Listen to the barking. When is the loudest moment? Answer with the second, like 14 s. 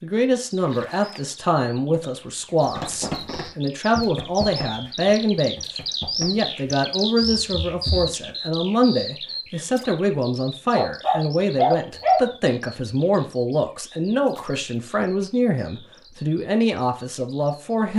12 s.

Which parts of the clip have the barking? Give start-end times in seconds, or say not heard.
10.8-12.3.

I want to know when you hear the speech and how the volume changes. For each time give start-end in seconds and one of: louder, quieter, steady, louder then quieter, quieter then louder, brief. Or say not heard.
0.0-17.9 steady.